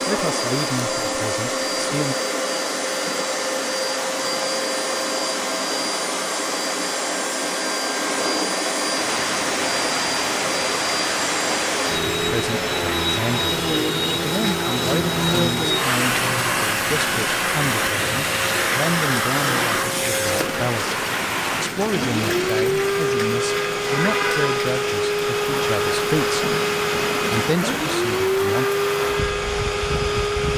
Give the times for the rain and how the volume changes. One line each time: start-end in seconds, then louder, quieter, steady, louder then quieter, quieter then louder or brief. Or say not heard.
8.8-30.5 steady.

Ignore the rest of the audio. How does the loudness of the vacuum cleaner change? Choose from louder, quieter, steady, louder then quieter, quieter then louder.
steady.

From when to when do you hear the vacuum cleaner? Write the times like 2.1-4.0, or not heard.
0.0-30.5.